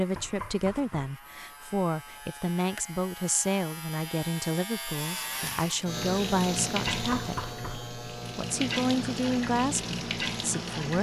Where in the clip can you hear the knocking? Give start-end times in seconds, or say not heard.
0.1-1.1, 6.8-7.9.